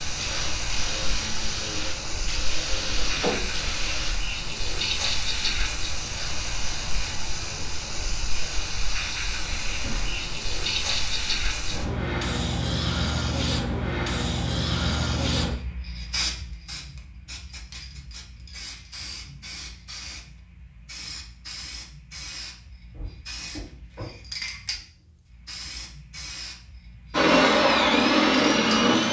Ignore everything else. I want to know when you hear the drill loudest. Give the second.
28 s.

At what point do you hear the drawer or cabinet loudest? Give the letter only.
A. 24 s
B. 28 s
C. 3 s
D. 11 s
C.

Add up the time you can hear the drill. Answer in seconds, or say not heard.
6 s.